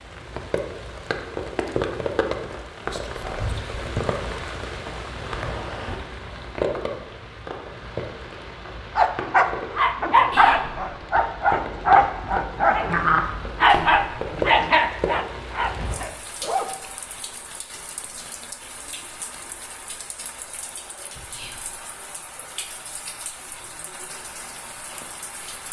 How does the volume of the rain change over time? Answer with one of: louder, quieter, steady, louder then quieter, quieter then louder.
quieter.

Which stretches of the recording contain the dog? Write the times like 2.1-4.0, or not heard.
8.9-16.9.